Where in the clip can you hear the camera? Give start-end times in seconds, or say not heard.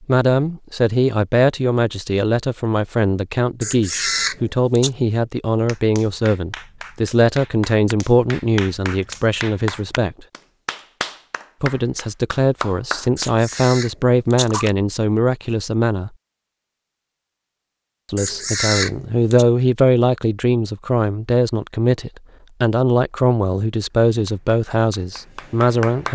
3.6-4.9, 13.2-14.7, 18.1-19.4.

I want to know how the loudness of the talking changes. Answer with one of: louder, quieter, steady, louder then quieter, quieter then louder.
steady.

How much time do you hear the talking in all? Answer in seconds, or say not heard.
23 s.